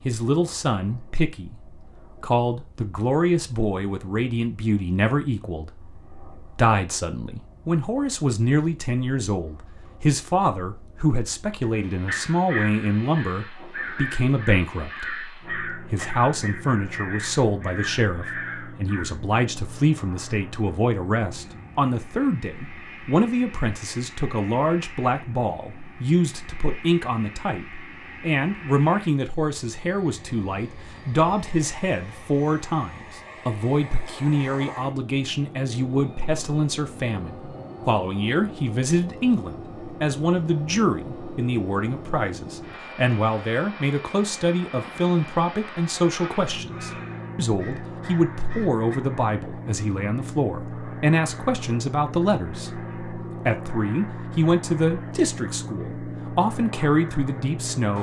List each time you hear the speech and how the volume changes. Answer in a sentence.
The speech can be heard from 0.1 to 57.9 s, at a steady volume.